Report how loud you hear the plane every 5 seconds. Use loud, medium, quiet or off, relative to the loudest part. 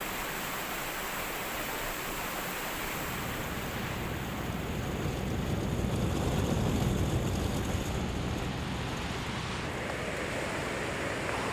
medium, loud, medium.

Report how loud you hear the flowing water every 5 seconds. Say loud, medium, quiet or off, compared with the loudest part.
loud, medium, loud.